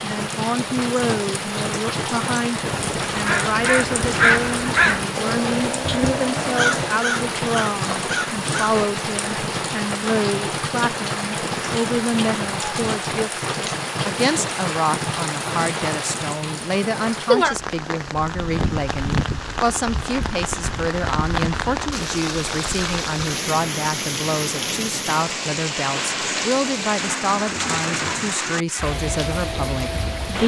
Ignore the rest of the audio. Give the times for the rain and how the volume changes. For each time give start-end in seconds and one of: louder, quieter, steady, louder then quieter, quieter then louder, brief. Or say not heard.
0.0-30.4 steady.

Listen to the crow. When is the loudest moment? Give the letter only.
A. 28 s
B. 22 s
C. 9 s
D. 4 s
D.